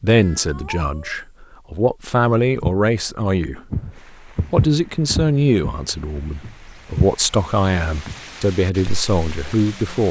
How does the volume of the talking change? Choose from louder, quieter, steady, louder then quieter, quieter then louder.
steady.